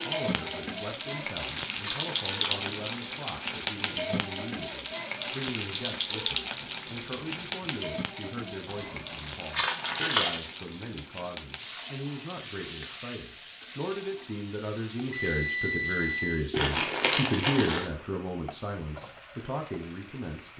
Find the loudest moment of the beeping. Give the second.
16 s.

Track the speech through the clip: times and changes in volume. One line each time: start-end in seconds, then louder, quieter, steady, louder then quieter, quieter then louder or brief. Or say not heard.
0.0-20.5 louder.